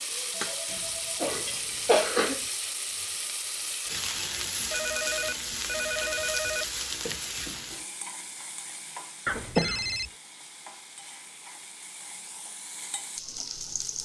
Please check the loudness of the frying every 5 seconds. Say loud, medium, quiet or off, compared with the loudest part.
loud, loud, medium.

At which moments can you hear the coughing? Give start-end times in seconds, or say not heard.
0.7-2.4, 9.2-10.1.